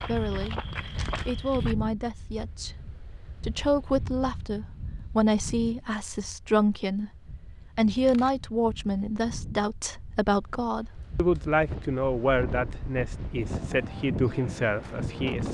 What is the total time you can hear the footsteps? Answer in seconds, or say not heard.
2 s.